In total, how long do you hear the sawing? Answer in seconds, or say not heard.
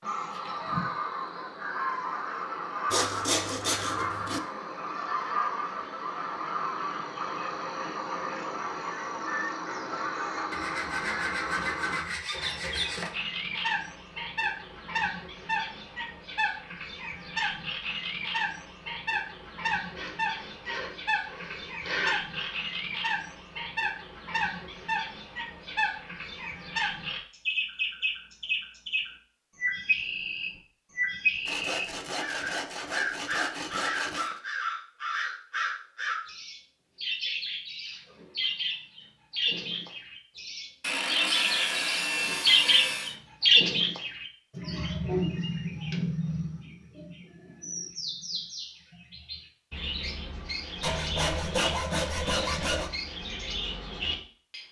14 s.